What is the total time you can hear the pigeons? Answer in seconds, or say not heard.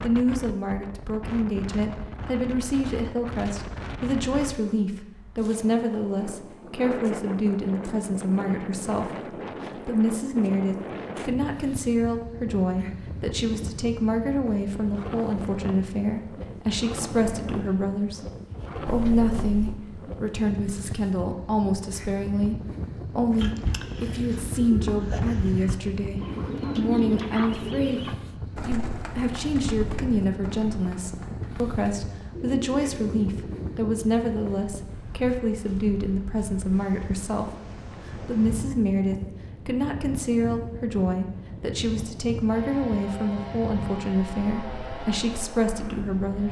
11 s.